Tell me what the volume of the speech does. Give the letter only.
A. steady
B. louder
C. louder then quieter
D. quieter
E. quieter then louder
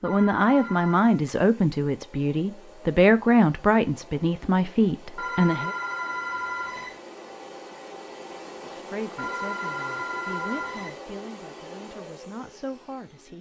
D.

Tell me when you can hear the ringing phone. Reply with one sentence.
You can hear the ringing phone from 0.1 to 1.1 s, from 5.2 to 7.0 s and from 9.2 to 11.0 s.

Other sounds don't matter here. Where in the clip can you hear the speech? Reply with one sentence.
The speech can be heard from 0.0 to 5.7 s and from 8.6 to 13.3 s.